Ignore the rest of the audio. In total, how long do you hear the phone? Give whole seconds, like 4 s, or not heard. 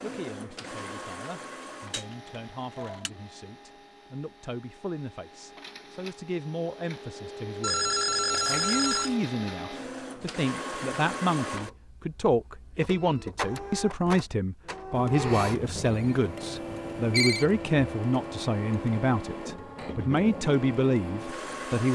5 s.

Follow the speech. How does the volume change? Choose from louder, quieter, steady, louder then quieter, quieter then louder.
louder.